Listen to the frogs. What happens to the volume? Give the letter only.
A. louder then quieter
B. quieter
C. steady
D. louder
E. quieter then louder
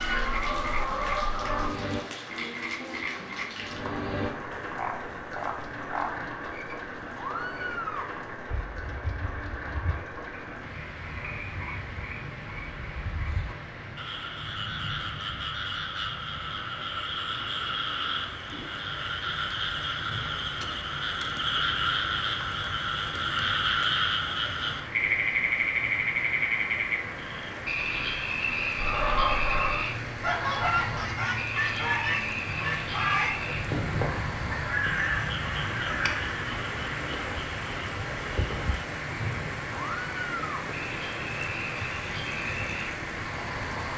A.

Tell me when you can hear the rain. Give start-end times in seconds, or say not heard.
0.0-43.9.